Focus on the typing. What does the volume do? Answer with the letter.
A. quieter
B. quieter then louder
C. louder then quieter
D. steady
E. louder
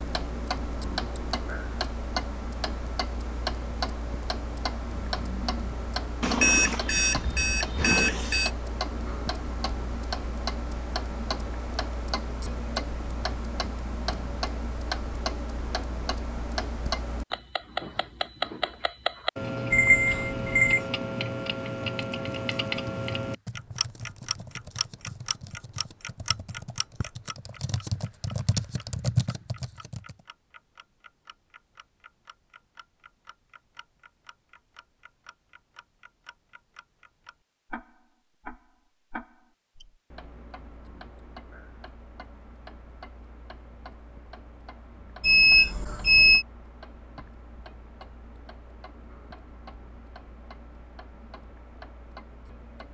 E.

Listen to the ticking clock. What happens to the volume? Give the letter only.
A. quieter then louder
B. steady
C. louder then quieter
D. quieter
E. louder
D.